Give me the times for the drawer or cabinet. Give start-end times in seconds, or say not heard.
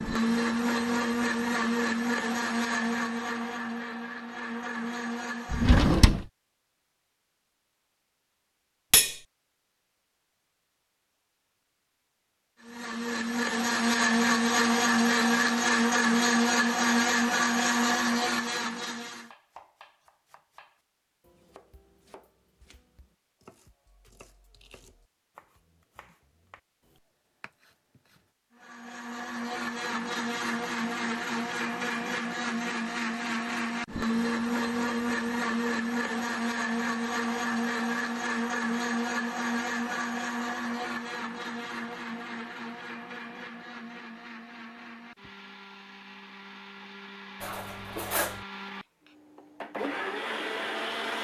5.5-6.2.